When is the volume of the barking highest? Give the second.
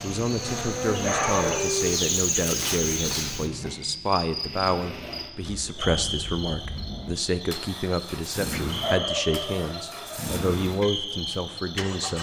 1 s.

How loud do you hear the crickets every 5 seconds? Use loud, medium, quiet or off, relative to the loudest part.
loud, medium, medium.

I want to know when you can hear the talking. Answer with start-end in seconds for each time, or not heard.
0.0-12.1.